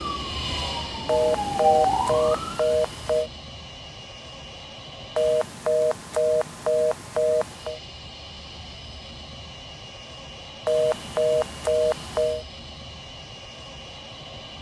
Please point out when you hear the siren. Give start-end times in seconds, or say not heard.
0.0-2.8.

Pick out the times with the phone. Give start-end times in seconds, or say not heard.
1.1-3.3, 5.2-7.8, 10.7-12.4.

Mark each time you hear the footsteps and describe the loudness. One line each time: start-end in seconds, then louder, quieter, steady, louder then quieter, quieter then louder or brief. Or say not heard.
not heard.